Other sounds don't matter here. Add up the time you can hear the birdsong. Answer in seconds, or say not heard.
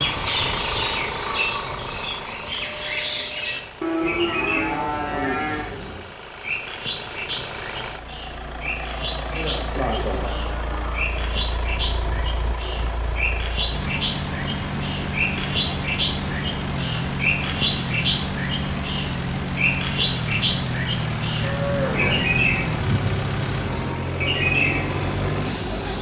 26 s.